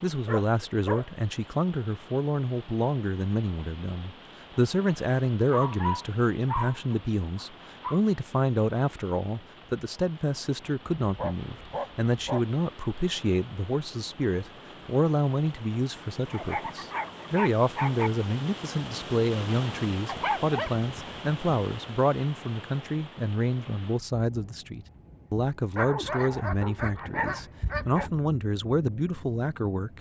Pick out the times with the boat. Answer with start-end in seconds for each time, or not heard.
not heard.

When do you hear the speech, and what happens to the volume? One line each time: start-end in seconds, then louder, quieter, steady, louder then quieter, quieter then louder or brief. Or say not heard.
0.0-29.9 steady.